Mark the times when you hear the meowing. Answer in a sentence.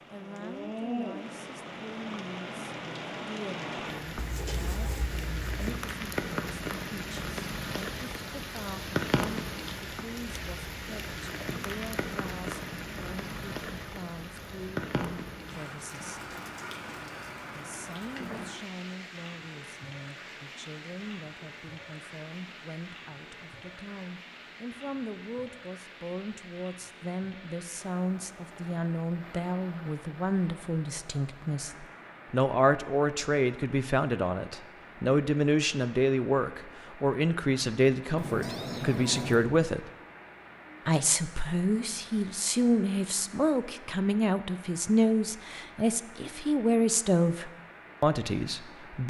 The meowing can be heard from 4.2 to 5.6 s and from 38.1 to 39.5 s.